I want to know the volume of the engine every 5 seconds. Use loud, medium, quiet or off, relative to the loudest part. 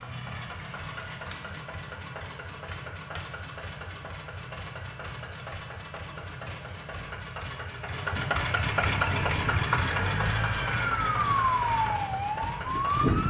medium, loud, loud.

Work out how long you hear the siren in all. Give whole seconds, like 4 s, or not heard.
4 s.